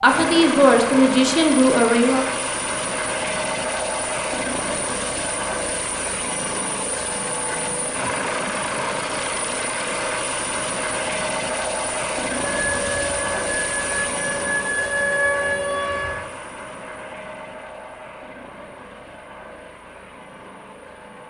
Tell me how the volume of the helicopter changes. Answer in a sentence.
The loudness of the helicopter goes down.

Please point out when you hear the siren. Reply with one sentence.
You can hear the siren from 12.4 to 16.2 s.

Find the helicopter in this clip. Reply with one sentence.
You can hear the helicopter from 0.0 to 21.2 s.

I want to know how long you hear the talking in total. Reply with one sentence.
You can hear the talking for 2 seconds altogether.